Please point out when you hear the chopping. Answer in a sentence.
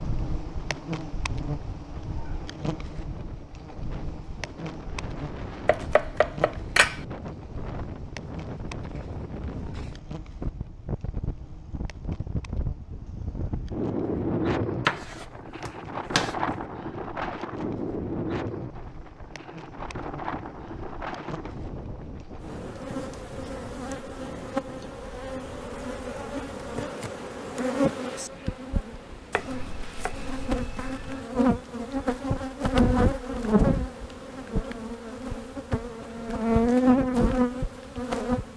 The chopping can be heard from 5.7 to 7.0 s, from 14.8 to 16.4 s and from 29.3 to 31.2 s.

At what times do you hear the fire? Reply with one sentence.
The fire can't be heard in this clip.